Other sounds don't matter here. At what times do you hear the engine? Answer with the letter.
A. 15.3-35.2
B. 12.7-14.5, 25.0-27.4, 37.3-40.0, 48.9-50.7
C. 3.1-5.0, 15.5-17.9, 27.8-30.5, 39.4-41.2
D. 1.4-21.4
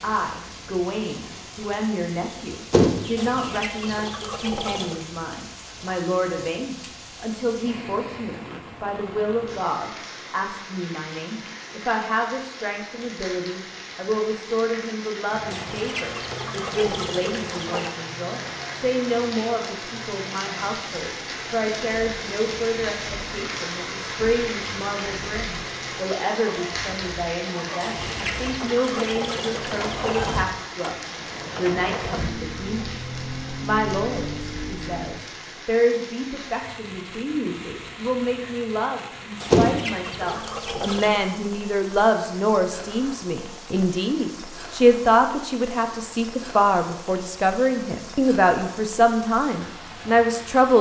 A.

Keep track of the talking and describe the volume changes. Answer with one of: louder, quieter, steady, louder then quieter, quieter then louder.
louder.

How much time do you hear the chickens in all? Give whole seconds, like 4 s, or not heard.
9 s.